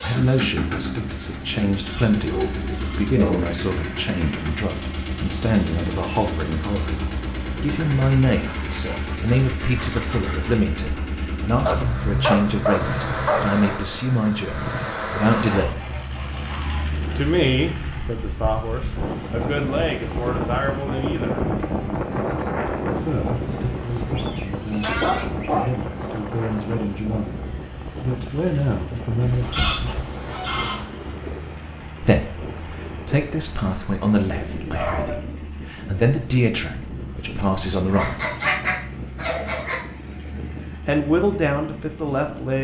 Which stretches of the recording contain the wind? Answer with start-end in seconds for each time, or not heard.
16.7-42.5.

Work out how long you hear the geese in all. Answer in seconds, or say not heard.
11 s.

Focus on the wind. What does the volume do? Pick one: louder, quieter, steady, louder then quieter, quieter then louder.
quieter.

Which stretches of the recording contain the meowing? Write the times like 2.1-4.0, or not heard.
not heard.